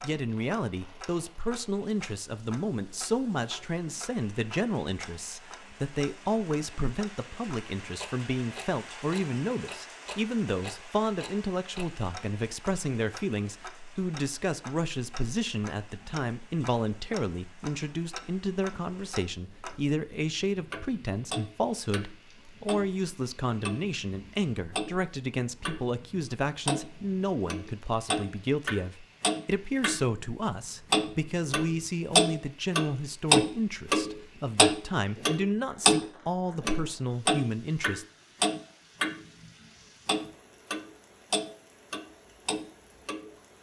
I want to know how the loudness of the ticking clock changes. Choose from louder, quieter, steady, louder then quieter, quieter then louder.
louder.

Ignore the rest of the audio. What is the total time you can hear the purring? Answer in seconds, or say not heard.
not heard.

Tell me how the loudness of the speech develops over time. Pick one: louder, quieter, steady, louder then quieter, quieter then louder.
steady.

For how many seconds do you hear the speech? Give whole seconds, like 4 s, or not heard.
38 s.